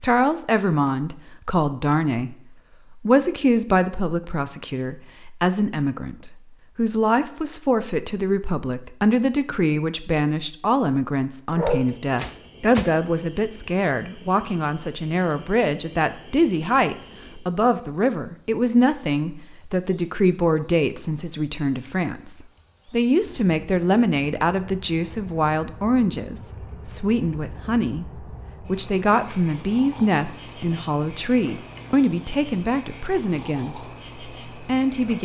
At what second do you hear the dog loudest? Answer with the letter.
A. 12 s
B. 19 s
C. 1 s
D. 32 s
A.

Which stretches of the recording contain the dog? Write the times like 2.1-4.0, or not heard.
11.5-12.9.